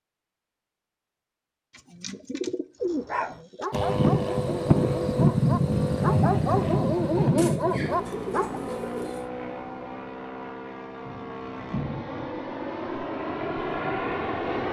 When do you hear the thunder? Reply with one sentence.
The thunder can be heard from 11.1 to 12.3 s.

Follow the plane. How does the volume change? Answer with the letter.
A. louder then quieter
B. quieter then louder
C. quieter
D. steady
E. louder
B.